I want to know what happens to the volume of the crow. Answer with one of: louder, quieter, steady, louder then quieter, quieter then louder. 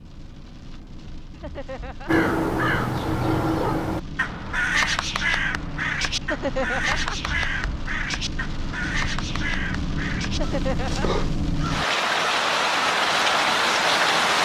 quieter.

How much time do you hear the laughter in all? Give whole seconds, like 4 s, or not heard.
3 s.